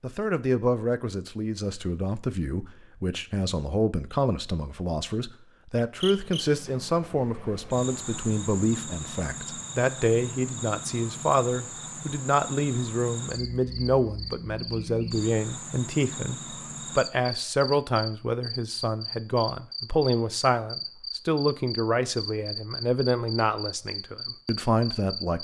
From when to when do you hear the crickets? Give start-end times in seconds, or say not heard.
6.0-25.3.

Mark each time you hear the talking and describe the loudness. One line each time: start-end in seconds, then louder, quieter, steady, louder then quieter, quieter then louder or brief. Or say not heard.
0.0-25.3 steady.